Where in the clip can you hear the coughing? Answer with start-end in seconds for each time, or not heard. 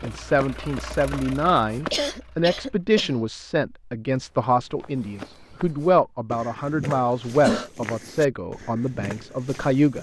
1.9-3.1, 6.8-7.7.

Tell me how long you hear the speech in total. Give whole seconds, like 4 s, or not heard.
10 s.